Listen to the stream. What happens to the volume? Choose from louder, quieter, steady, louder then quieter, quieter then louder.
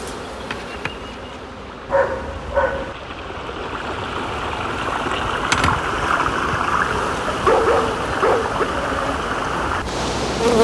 louder.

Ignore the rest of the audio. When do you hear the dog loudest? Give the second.
8 s.